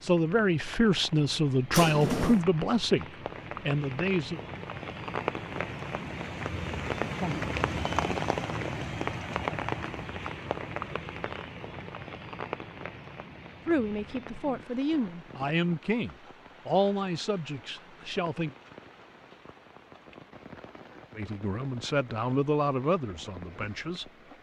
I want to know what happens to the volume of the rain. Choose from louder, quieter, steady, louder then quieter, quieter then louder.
louder then quieter.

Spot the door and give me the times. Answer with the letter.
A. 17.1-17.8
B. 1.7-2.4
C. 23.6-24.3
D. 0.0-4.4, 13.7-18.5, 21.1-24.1
B.